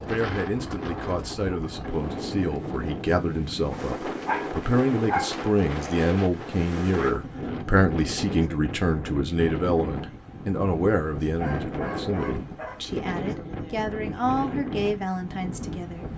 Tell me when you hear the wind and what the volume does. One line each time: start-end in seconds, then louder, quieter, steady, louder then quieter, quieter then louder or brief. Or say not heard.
0.0-16.1 steady.